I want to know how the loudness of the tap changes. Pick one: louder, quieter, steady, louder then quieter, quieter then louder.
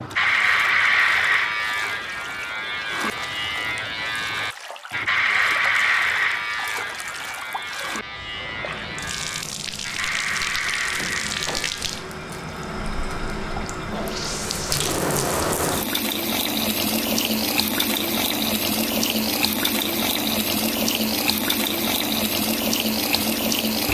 louder.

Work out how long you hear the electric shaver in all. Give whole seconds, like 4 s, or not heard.
12 s.